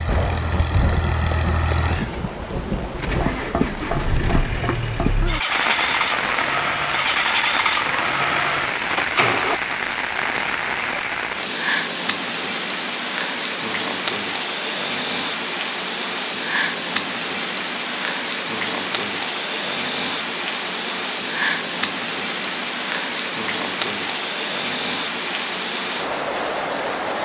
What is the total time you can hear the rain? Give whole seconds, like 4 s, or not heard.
27 s.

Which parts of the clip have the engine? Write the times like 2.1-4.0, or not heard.
0.0-9.6.